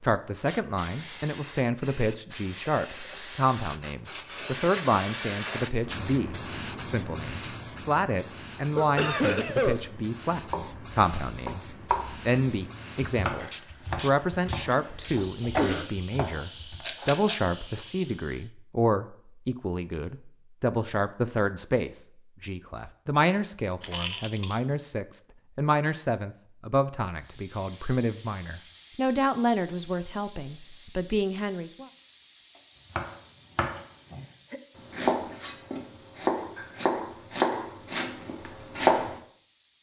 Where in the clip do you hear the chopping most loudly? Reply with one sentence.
The volume of the chopping peaks at 39 seconds.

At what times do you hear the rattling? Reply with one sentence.
You can hear the rattling from 16.8 to 17.4 s and from 23.8 to 24.6 s.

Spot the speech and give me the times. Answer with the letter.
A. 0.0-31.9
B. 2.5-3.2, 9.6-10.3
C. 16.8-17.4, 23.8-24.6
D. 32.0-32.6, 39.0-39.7
A.